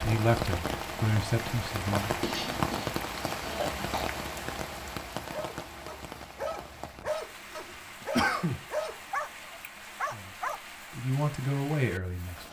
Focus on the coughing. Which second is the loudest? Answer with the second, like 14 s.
8 s.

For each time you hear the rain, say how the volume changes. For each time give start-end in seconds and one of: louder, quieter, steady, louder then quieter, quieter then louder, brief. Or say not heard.
0.0-12.4 quieter.